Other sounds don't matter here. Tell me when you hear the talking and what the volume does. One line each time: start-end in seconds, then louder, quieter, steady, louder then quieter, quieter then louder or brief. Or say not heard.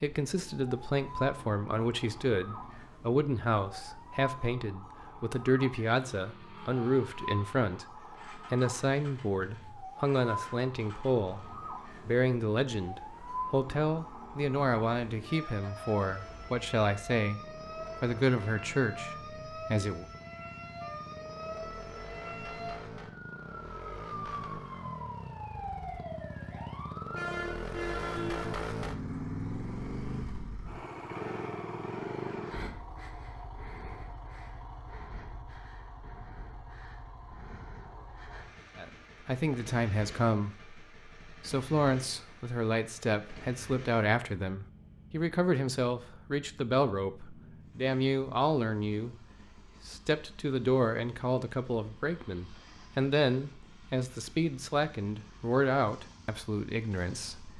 0.0-20.1 steady
38.8-57.5 steady.